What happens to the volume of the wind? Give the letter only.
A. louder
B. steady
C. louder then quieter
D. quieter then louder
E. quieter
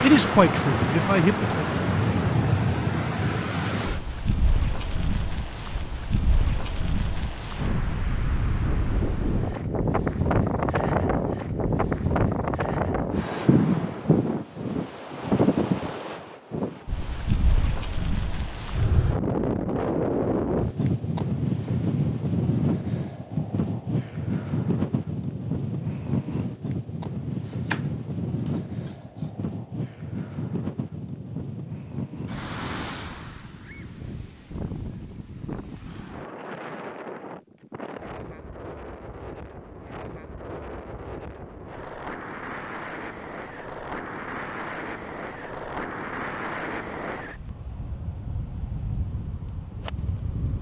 E.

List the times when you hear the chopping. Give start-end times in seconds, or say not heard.
27.4-29.4.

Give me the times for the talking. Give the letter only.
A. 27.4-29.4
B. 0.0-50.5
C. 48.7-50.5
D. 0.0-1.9
D.